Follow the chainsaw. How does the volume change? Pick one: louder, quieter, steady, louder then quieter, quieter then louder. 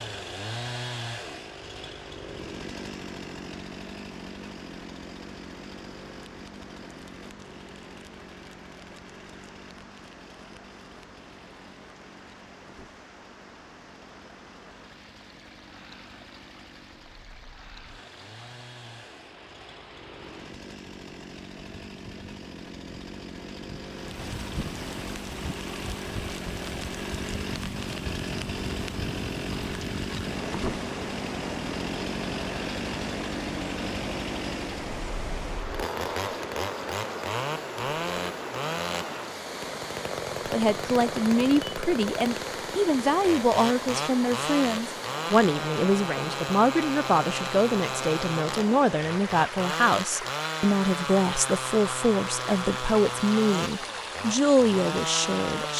quieter then louder.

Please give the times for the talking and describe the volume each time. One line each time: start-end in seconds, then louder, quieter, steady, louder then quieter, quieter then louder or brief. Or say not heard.
40.5-55.7 steady.